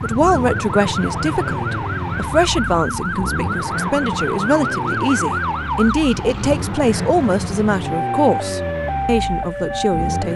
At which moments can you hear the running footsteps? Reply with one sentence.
The running footsteps can't be heard in this clip.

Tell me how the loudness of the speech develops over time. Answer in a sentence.
The volume of the speech stays about the same.